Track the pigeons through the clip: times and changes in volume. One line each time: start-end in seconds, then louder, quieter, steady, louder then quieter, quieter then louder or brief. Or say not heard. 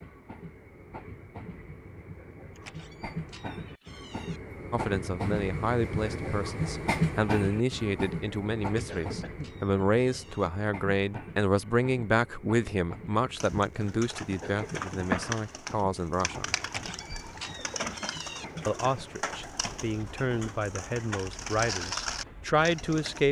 13.4-23.2 quieter then louder.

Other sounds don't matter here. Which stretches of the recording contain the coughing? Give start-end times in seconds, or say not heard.
8.8-9.6, 14.4-15.1.